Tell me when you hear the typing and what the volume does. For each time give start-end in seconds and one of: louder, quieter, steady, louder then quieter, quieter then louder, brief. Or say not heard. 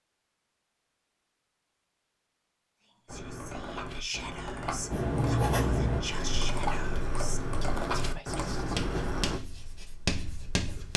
3.0-9.4 louder.